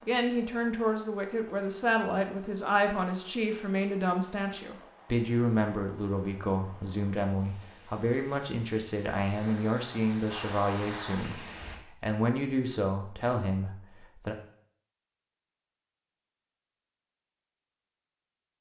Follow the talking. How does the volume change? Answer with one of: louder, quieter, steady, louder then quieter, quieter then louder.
steady.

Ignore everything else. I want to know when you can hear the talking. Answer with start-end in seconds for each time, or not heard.
0.1-14.3.